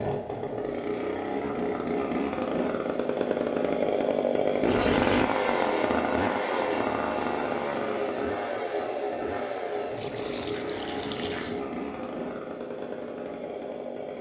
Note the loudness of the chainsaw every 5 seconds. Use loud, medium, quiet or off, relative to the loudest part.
loud, loud, medium.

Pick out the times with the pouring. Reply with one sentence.
The pouring can be heard from 4.7 to 5.3 s and from 9.9 to 11.6 s.